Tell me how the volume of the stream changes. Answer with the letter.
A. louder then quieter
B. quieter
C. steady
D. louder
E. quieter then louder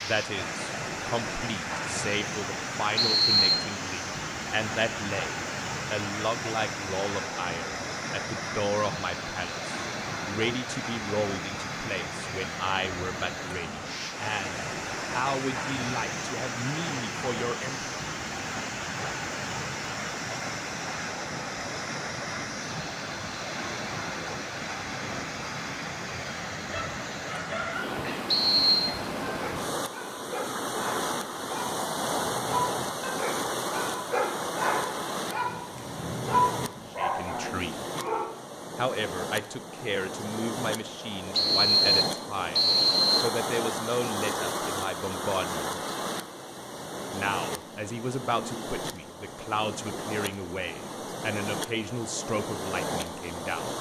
C.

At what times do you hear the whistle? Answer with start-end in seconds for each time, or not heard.
3.0-3.6, 28.2-28.9, 41.3-43.4.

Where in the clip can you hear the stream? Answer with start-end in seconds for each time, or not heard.
0.0-53.7.